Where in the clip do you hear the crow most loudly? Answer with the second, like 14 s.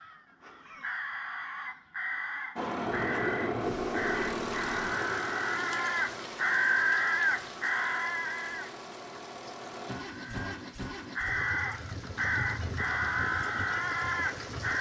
7 s.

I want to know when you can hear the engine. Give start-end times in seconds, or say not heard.
2.5-14.7.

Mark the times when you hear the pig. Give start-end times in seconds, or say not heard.
not heard.